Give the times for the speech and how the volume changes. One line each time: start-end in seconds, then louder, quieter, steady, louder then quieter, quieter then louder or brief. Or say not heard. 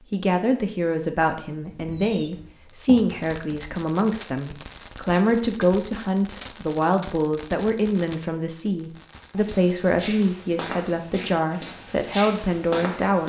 0.0-13.2 steady.